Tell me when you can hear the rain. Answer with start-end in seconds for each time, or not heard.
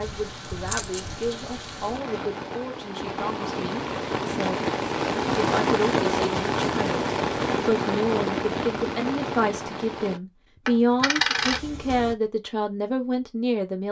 0.0-10.2.